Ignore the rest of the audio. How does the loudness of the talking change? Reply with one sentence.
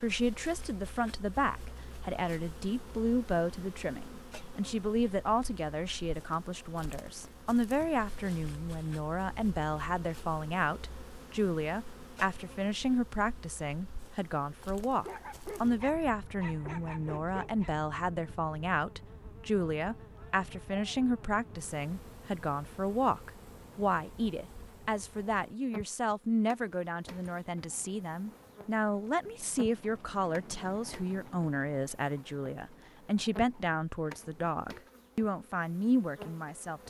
The volume of the talking stays about the same.